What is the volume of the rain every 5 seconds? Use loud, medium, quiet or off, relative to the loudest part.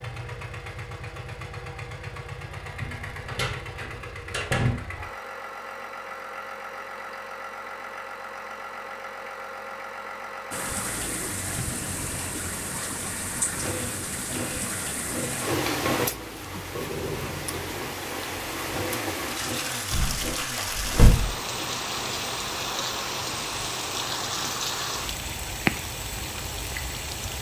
off, off, loud, loud, loud, loud.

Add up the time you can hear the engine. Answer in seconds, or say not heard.
27 s.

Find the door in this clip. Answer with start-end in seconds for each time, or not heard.
2.8-4.8, 15.2-16.3, 19.9-21.3.